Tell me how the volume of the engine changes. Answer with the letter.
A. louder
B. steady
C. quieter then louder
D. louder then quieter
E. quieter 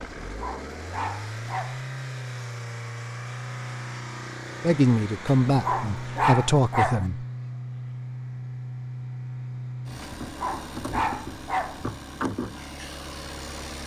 B.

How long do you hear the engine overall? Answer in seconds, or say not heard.
14 s.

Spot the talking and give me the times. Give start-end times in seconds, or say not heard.
4.6-7.2.